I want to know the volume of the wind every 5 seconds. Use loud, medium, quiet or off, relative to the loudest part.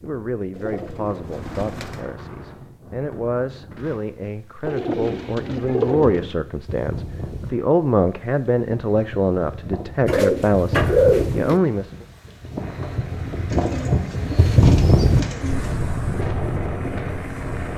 quiet, quiet, loud, loud.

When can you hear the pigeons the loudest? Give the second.
11 s.